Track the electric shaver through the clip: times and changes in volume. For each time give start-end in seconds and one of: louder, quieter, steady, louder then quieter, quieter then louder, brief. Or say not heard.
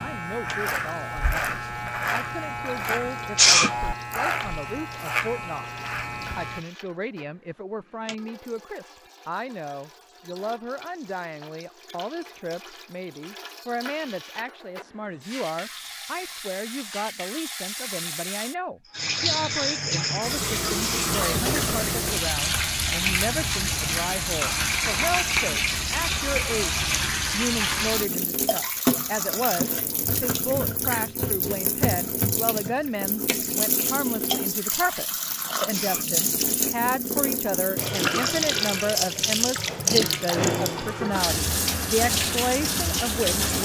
0.0-6.6 steady.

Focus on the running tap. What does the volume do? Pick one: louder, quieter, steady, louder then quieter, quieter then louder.
louder.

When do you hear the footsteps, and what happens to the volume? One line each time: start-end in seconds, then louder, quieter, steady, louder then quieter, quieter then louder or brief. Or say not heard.
not heard.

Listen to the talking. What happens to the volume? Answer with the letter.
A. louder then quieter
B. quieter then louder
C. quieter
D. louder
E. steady
D.